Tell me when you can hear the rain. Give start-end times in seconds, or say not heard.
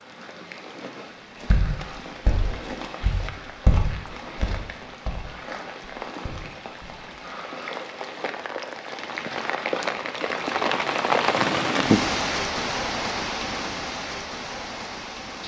0.0-15.4.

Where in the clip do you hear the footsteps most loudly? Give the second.
4 s.